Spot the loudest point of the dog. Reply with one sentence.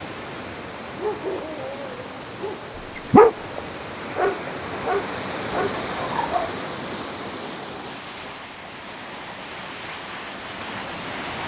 The volume of the dog peaks at 3 seconds.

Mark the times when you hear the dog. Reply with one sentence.
The dog can be heard from 1.0 to 6.5 s.